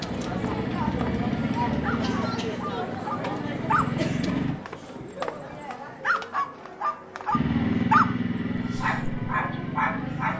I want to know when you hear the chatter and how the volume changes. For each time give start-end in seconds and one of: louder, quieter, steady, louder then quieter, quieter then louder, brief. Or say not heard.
0.0-10.3 quieter.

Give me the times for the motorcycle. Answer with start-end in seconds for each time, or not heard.
0.0-4.5, 7.3-10.3.